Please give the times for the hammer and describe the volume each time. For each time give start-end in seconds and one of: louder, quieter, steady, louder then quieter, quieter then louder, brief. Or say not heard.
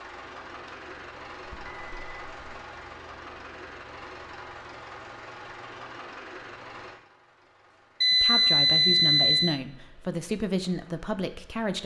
not heard.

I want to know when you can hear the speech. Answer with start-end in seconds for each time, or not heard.
8.1-11.8.